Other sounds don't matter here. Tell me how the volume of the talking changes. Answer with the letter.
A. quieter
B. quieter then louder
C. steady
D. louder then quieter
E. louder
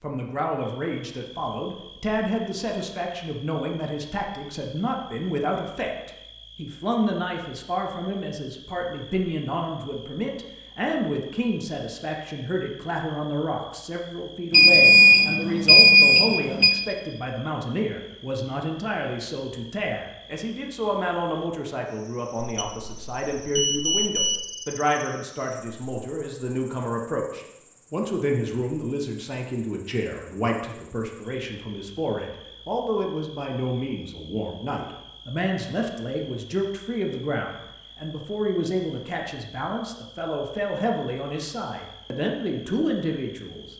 C.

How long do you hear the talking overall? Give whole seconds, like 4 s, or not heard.
44 s.